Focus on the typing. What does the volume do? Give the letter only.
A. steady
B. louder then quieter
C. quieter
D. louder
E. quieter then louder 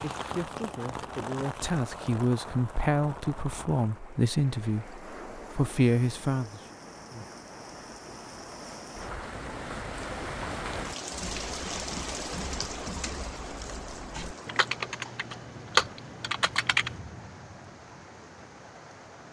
D.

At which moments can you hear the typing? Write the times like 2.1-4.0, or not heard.
11.1-16.9.